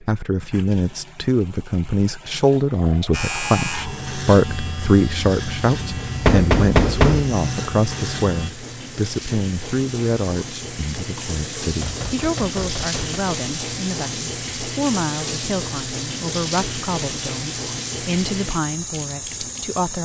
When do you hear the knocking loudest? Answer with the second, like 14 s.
7 s.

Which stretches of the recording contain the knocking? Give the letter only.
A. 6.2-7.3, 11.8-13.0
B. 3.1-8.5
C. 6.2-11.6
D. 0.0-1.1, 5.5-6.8
A.